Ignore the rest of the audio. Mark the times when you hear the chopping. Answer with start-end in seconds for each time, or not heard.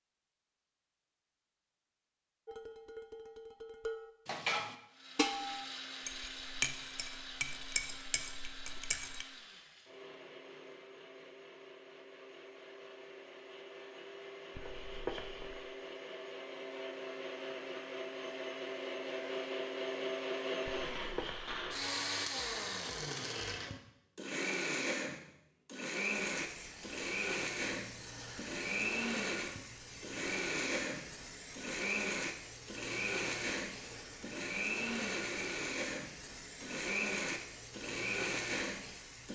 not heard.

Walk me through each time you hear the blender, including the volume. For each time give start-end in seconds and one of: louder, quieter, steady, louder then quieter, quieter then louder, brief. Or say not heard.
4.9-39.3 louder.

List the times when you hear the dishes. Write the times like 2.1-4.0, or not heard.
2.5-9.2.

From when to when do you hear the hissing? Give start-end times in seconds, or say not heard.
26.2-39.3.